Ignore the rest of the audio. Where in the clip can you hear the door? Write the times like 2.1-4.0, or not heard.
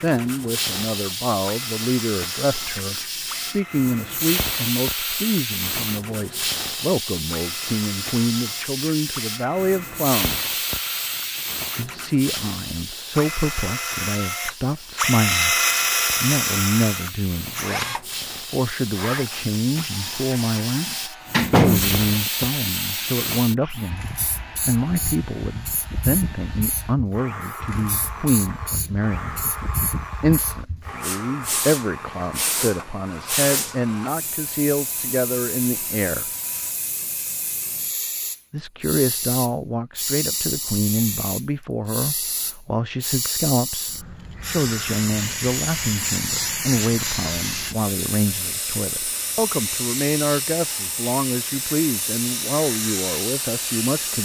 20.9-22.1.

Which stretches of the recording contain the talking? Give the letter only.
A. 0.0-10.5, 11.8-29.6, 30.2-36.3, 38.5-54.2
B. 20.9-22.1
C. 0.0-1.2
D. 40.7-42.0
A.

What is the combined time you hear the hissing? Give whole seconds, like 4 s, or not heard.
54 s.